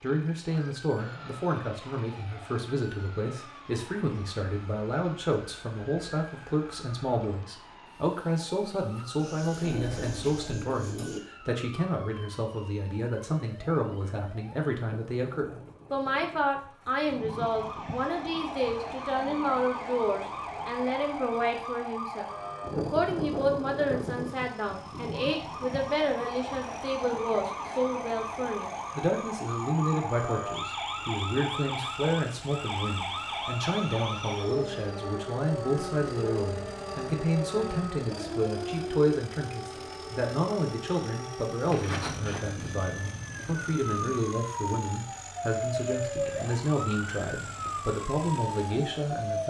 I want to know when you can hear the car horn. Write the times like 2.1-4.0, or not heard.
not heard.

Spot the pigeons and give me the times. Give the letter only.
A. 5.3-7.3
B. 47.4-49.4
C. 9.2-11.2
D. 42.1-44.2
C.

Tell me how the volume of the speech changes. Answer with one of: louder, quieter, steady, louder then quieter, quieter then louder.
steady.